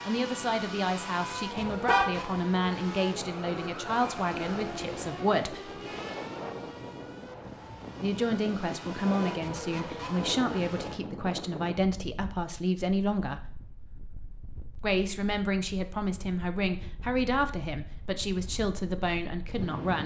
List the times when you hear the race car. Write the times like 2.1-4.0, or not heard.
0.0-11.1.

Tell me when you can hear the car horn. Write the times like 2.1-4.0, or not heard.
1.5-2.1.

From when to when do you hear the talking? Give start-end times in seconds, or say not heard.
0.1-5.7, 8.0-13.6, 14.8-20.0.